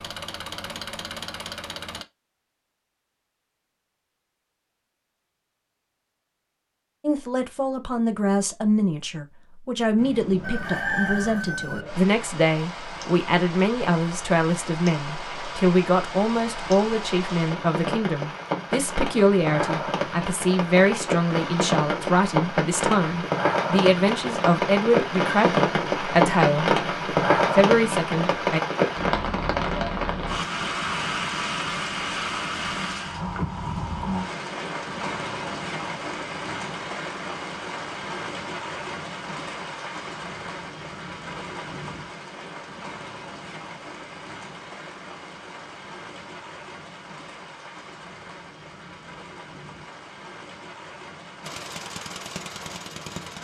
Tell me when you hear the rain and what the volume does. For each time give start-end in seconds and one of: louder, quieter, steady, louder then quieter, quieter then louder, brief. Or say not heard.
9.9-53.4 louder then quieter.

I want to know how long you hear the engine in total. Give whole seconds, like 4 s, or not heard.
4 s.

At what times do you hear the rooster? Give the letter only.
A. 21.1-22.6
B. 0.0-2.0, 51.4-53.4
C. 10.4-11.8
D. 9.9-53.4
C.